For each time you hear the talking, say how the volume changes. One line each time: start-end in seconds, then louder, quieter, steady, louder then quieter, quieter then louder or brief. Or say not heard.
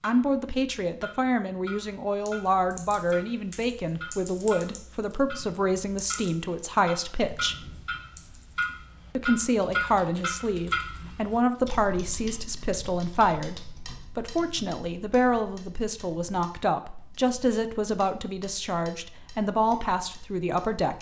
0.0-7.7 steady
9.2-20.9 steady.